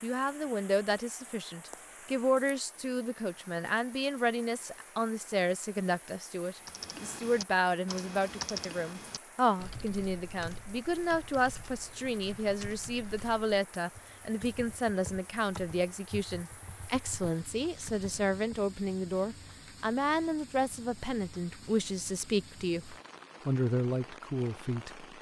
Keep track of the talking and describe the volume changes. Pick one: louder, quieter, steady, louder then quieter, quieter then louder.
steady.